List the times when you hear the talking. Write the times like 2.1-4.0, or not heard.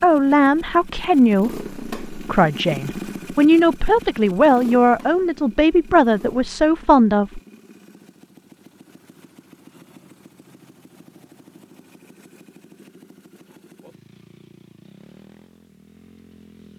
0.0-7.4.